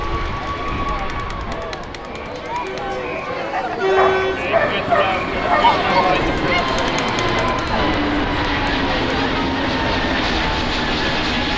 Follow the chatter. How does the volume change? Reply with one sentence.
The volume of the chatter goes up, then down.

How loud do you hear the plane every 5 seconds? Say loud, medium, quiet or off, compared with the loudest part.
medium, loud, loud.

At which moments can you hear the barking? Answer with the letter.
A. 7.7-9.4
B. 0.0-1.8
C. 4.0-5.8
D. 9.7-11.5
C.